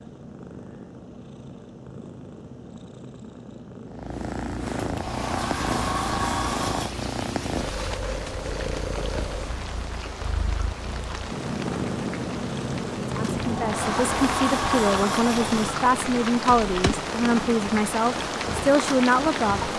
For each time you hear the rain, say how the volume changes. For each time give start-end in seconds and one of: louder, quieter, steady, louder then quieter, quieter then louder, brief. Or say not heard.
4.9-19.7 louder.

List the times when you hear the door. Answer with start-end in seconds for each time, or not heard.
4.9-7.0, 13.4-15.8.